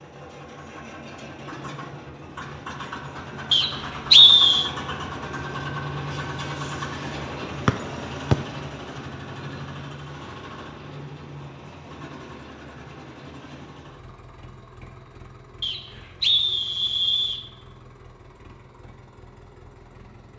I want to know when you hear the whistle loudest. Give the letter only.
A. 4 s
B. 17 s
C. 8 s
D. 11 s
A.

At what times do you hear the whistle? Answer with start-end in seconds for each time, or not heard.
3.5-4.7, 15.6-17.4.